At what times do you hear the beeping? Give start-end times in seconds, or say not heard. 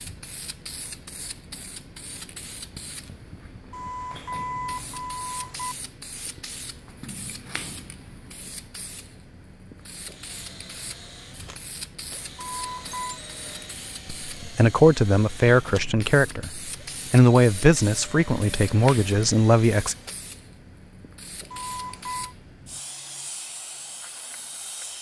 3.7-5.8, 12.3-13.2, 21.5-22.4.